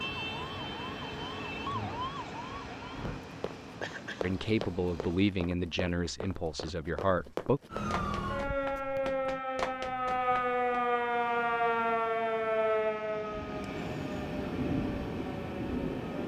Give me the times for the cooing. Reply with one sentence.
You can't hear the cooing here.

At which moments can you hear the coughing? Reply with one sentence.
You can hear the coughing from 3.8 to 4.3 s.